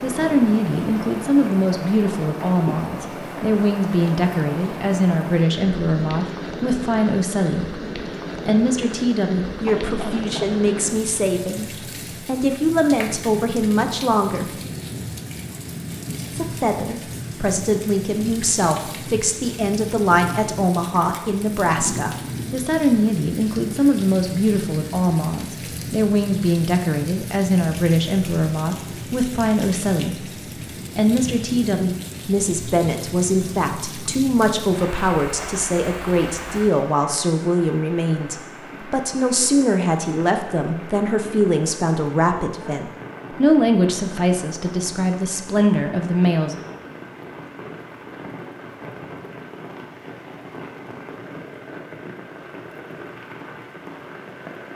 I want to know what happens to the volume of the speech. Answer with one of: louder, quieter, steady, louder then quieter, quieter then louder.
steady.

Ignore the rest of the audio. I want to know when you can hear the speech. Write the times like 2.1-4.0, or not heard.
0.0-7.8, 8.4-14.7, 16.3-30.2, 30.9-46.6.